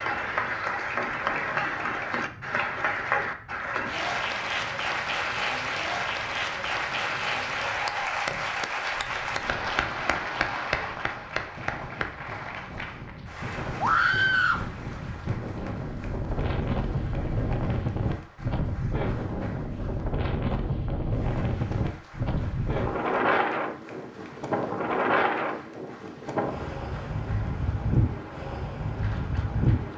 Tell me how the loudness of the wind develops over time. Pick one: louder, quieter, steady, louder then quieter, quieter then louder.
louder.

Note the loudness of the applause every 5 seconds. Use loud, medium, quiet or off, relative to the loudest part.
loud, loud, medium, quiet, quiet, quiet.